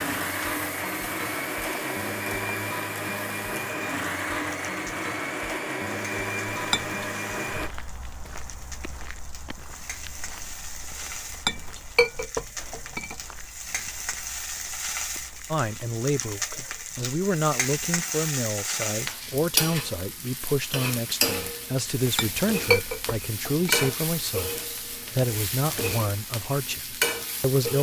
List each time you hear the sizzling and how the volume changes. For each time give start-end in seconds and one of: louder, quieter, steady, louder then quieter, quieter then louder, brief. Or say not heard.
0.0-27.7 louder.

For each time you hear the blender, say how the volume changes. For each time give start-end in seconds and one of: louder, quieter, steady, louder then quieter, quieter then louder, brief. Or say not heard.
0.0-7.7 steady.